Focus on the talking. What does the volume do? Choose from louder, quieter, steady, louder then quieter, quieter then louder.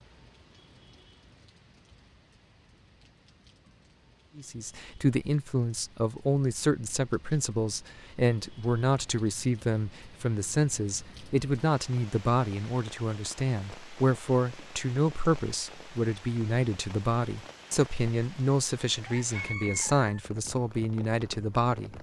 steady.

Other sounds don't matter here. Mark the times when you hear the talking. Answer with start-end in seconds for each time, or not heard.
4.3-21.9.